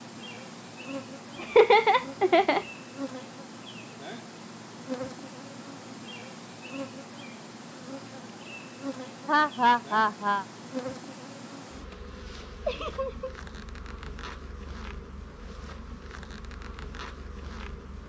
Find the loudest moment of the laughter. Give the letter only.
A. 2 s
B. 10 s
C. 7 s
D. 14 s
A.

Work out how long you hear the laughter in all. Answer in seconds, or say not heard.
3 s.